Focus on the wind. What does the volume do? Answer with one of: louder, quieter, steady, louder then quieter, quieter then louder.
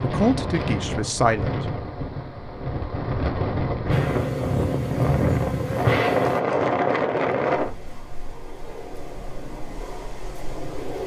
louder then quieter.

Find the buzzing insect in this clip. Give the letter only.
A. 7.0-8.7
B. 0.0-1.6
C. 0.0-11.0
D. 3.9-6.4
D.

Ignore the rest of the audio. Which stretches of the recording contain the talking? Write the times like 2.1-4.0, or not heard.
0.0-1.6.